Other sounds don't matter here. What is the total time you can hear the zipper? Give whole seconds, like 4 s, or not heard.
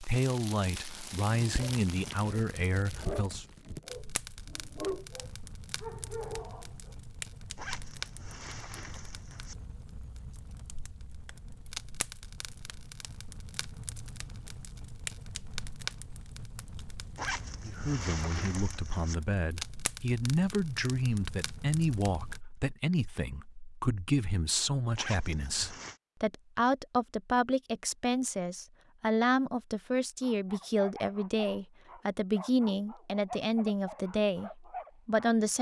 5 s.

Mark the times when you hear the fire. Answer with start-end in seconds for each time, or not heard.
0.0-22.4.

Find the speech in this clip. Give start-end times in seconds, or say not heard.
0.0-3.5, 17.6-35.5.